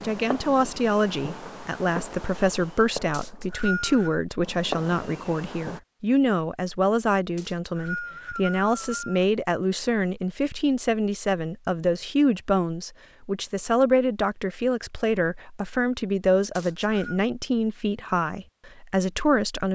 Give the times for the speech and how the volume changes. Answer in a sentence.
The speech can be heard from 0.0 to 19.6 s, at a steady volume.